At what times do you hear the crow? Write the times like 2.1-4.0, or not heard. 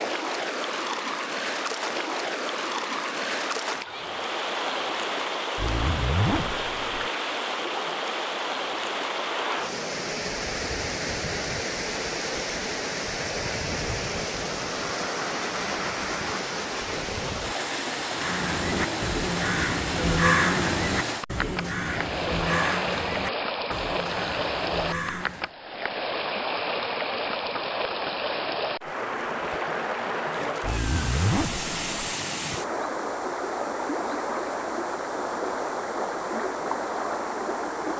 18.1-25.5.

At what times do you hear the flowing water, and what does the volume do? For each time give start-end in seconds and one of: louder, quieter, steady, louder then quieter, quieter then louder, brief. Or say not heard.
0.0-37.9 steady.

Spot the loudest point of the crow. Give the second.
20 s.